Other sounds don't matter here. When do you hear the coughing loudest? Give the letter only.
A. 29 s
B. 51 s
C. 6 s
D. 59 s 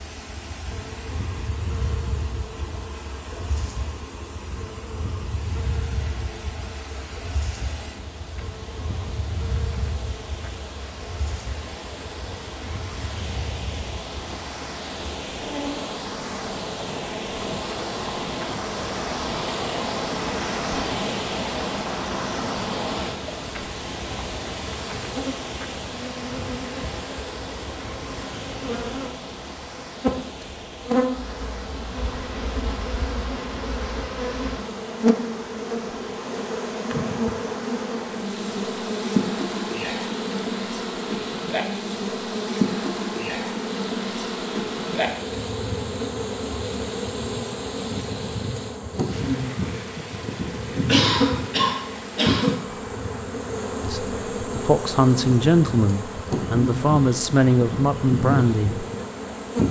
B.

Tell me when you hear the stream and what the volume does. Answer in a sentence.
The stream can be heard from 0.0 to 59.6 s, getting louder then quieter.